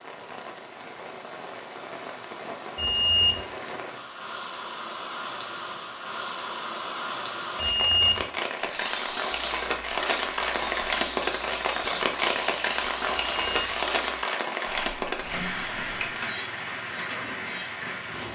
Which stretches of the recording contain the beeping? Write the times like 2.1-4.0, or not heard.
2.8-3.5, 7.5-8.2, 13.3-13.8.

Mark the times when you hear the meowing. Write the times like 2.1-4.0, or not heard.
not heard.